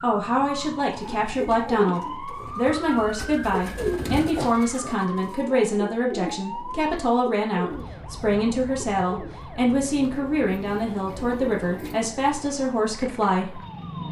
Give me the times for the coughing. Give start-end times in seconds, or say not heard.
4.3-5.0.